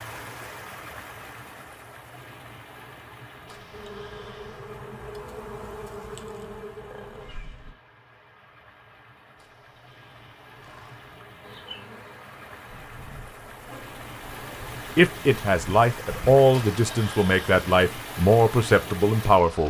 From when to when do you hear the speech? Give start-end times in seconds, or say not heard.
14.9-19.6.